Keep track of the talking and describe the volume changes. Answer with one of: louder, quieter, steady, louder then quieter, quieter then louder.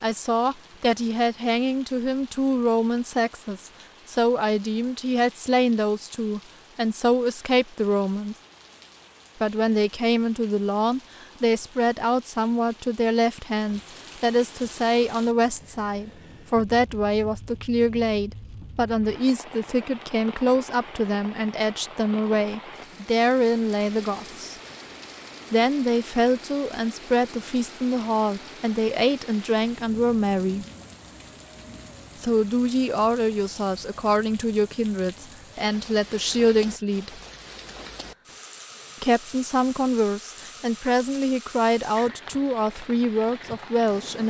steady.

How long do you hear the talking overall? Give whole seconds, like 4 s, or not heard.
39 s.